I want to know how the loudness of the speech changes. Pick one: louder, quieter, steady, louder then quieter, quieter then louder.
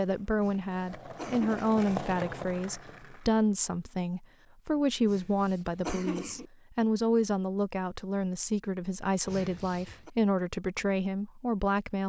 steady.